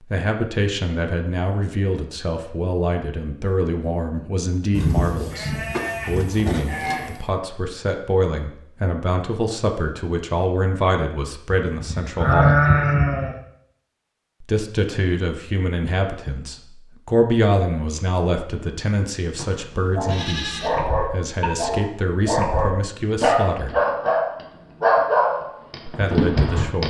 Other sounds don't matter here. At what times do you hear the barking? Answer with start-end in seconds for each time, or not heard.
19.9-26.8.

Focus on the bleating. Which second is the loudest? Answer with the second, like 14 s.
13 s.